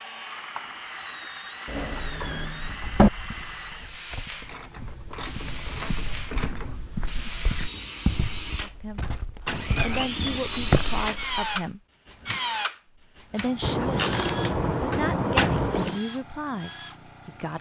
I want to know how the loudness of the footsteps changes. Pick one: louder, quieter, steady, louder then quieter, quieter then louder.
louder.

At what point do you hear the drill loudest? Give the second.
11 s.